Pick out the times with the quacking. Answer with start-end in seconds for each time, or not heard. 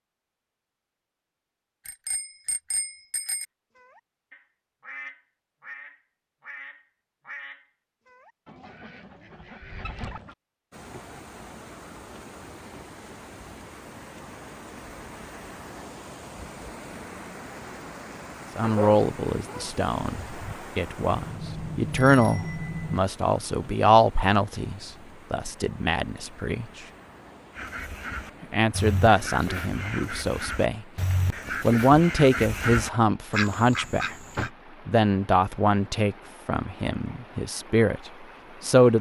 3.8-10.3, 27.6-34.5.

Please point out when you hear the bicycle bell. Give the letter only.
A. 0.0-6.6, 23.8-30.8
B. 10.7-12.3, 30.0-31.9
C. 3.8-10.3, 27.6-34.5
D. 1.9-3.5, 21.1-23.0
D.